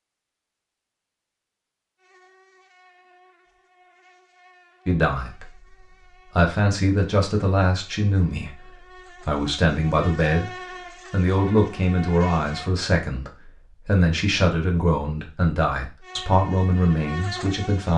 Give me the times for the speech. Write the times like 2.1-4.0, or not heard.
4.8-5.7, 6.3-10.5, 11.1-17.9.